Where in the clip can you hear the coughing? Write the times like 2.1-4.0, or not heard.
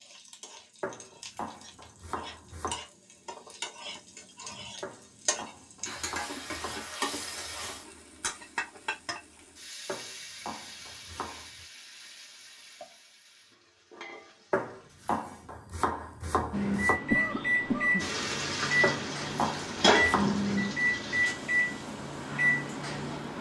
17.1-18.1.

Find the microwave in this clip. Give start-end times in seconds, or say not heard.
16.5-23.3.